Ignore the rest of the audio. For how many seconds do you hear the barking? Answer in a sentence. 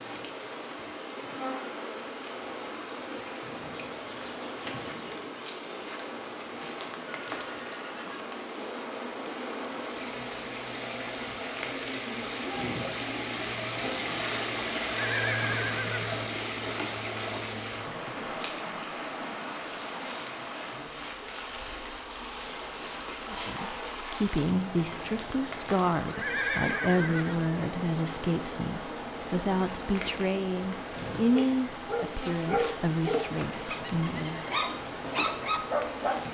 The barking can be heard for 5 seconds in total.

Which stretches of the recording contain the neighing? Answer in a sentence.
You can hear the neighing from 6.6 to 8.3 s, from 14.8 to 16.2 s and from 26.1 to 27.4 s.